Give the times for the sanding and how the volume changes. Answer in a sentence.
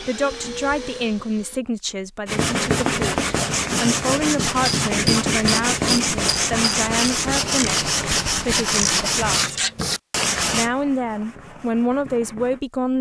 The sanding can be heard from 2.2 to 12.7 s, getting quieter.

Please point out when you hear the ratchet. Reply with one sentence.
The ratchet can be heard from 4.7 to 9.7 s.